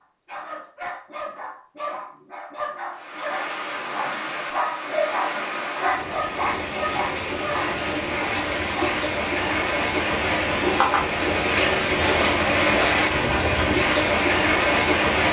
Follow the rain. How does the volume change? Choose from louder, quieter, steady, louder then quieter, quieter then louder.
louder.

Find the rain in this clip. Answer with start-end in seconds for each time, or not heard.
2.9-15.2.